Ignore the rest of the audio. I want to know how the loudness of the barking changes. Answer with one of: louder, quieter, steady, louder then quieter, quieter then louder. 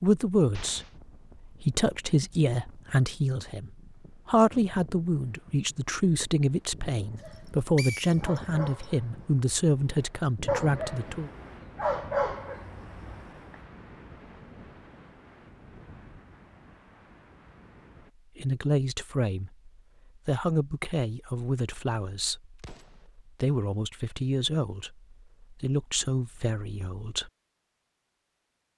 louder.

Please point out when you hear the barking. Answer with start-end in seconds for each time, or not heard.
7.0-13.6.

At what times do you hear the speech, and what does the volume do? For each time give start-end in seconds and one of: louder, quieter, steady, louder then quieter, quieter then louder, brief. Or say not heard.
0.0-11.3 steady
18.4-27.3 steady.